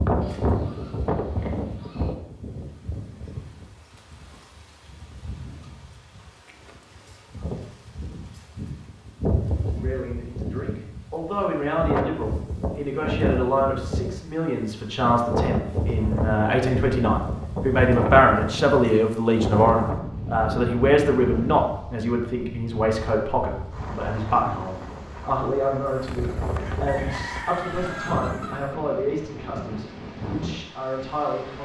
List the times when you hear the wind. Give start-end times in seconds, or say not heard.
0.0-31.6.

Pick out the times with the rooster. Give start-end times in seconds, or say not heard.
25.9-28.8.